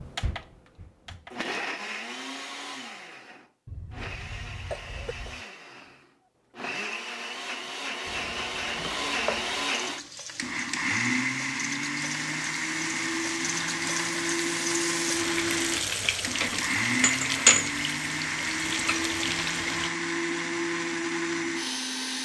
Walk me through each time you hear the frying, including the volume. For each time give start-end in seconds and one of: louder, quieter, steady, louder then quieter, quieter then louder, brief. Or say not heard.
8.1-19.9 louder.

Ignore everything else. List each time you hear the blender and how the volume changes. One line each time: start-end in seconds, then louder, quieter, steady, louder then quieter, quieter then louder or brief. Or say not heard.
0.0-22.2 louder.